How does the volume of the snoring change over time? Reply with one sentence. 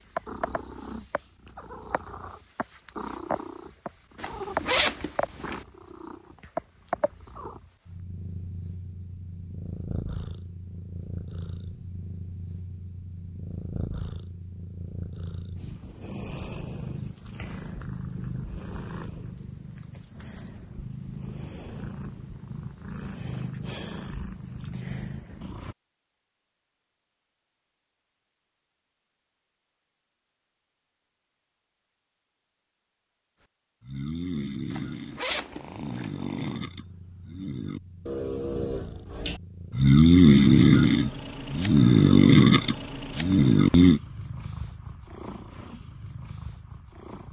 The volume of the snoring goes up.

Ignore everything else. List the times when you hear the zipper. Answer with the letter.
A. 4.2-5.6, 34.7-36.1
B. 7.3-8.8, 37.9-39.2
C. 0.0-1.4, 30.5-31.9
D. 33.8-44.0
A.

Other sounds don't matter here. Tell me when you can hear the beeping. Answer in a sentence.
The beeping can't be heard in this clip.